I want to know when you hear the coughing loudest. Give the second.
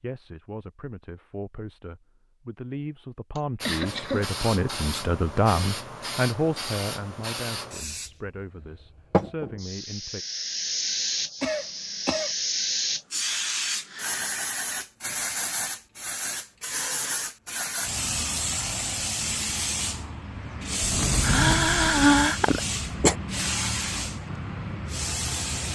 22 s.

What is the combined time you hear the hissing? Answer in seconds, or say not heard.
22 s.